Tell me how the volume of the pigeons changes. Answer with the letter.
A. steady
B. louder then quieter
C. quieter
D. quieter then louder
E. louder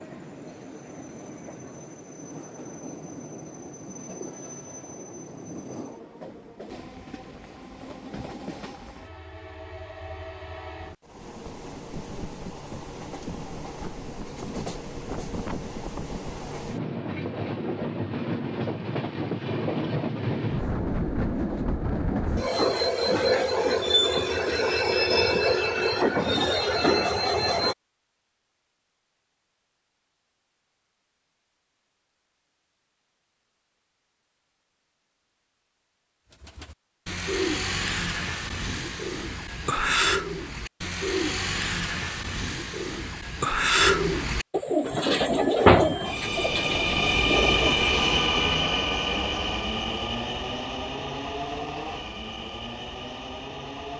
E.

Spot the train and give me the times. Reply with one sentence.
You can hear the train from 0.0 to 27.8 s and from 44.8 to 53.9 s.